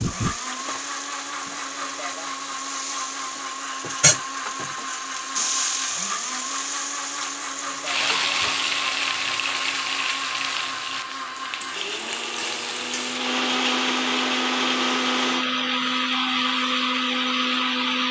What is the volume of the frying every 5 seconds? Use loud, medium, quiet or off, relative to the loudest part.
loud, loud, medium, quiet.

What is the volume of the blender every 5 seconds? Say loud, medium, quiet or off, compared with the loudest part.
medium, medium, loud, loud.